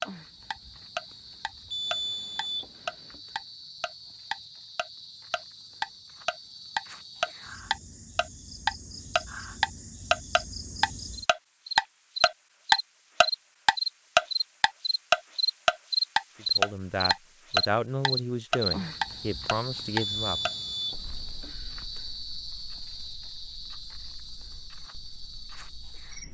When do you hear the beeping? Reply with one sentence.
The beeping can be heard from 1.7 to 3.2 s and from 20.0 to 21.5 s.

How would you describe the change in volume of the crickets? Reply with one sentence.
The loudness of the crickets goes up, then down.